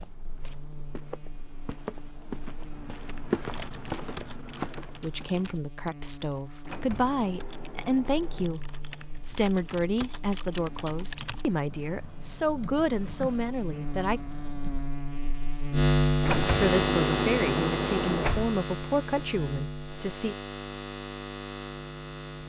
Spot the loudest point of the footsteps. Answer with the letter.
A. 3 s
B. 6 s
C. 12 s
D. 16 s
A.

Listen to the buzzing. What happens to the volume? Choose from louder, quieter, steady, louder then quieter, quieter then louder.
louder then quieter.